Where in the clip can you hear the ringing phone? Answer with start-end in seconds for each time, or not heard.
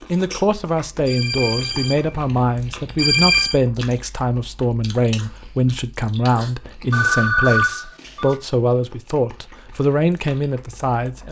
1.1-3.6, 6.9-8.3.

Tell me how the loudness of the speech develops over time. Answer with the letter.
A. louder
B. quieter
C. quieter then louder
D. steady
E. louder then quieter
D.